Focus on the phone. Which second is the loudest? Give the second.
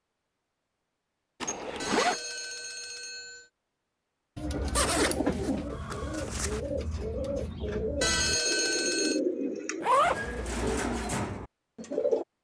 8 s.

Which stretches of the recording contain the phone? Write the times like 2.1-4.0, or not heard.
1.8-3.5, 8.0-9.2.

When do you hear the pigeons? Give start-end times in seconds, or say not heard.
4.3-12.2.